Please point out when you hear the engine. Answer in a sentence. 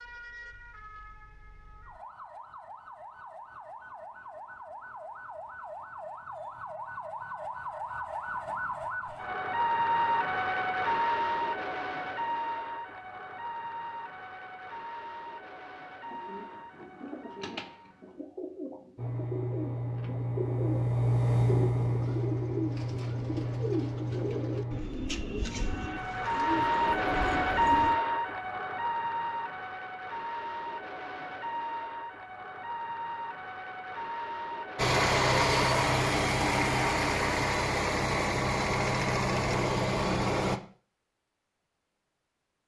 The engine can be heard from 18.9 to 24.8 s and from 34.8 to 40.6 s.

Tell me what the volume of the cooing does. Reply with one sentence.
The volume of the cooing goes up.